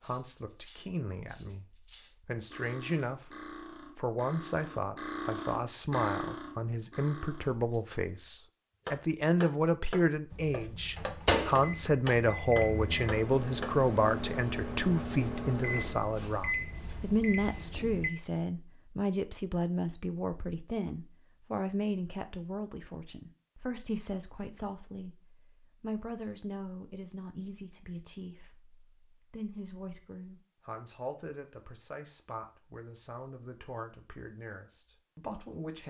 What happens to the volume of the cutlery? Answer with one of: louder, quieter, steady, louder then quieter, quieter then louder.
louder.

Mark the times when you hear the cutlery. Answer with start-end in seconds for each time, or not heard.
0.0-7.8.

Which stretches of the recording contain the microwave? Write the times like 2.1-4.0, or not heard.
10.3-18.1.